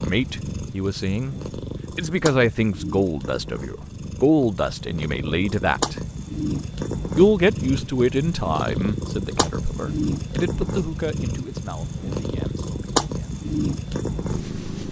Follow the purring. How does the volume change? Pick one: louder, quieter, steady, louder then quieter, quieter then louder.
louder.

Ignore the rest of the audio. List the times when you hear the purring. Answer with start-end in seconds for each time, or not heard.
0.0-14.8.